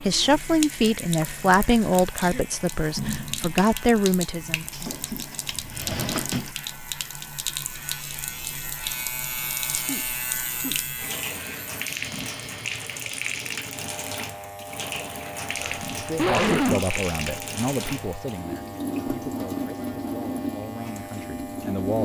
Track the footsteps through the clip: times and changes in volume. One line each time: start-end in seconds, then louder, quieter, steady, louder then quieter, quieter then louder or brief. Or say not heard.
not heard.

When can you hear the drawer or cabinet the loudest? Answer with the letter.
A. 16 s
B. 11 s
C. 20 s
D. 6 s
D.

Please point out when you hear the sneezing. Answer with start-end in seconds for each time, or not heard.
2.0-2.5, 9.7-10.8, 15.6-17.0.